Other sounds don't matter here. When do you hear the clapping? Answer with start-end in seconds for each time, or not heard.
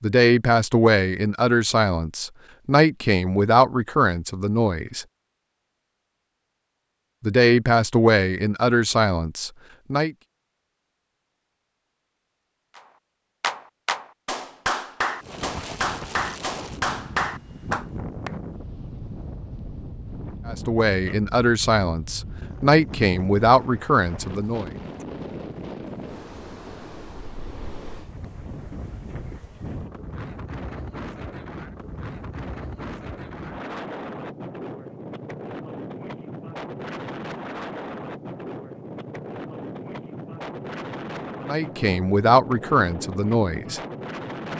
13.4-18.4.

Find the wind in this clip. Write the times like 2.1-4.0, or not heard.
15.2-44.5.